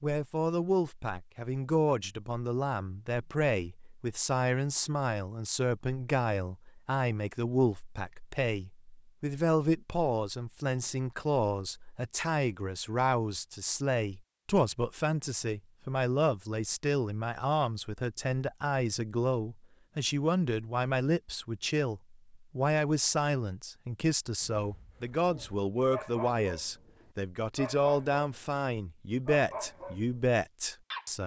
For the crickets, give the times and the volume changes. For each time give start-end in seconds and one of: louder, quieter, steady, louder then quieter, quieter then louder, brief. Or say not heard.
not heard.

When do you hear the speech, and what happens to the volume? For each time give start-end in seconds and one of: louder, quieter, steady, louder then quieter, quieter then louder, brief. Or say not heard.
0.0-31.2 steady.